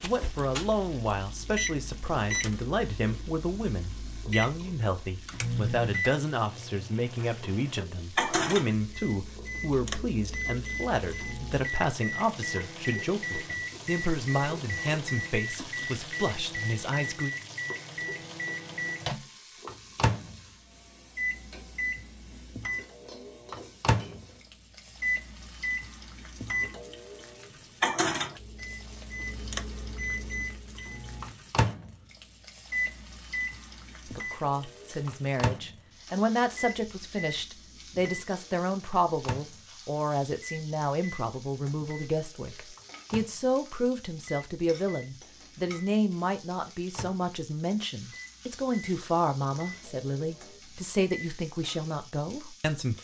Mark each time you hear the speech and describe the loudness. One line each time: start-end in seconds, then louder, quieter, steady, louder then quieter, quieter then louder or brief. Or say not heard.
0.0-17.3 steady
34.0-52.9 steady.